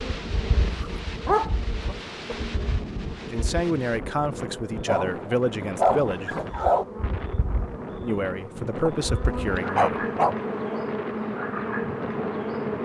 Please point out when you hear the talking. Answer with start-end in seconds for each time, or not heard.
3.3-6.3, 8.0-10.1.